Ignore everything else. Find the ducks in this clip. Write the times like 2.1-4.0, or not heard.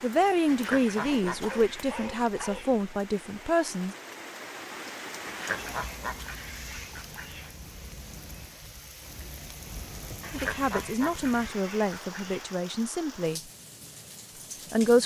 0.5-2.8, 5.2-7.5, 10.2-12.6.